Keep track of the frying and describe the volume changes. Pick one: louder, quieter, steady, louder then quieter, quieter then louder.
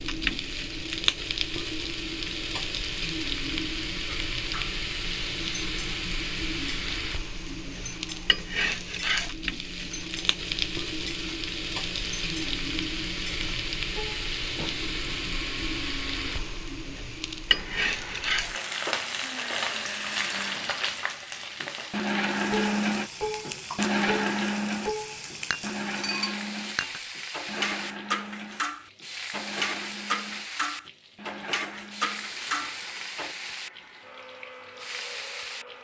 quieter.